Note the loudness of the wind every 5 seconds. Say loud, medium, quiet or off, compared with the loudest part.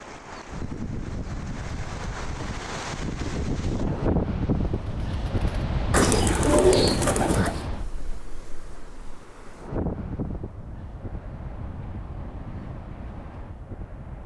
loud, loud, medium.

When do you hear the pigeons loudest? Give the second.
7 s.